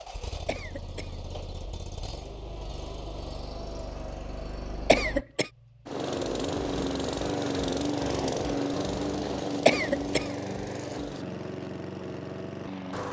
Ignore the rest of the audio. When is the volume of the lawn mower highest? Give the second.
8 s.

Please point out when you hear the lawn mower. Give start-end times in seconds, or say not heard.
0.0-13.0.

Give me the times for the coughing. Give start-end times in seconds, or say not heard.
0.5-1.1, 4.8-5.5, 9.7-10.2.